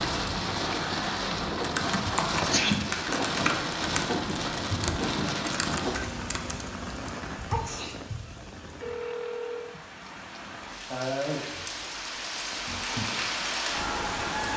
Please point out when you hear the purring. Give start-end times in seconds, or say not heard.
not heard.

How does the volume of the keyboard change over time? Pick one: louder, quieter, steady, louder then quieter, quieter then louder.
quieter.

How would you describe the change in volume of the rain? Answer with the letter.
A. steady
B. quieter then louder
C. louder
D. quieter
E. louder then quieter
B.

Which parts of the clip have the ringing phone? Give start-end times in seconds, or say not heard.
8.8-9.8.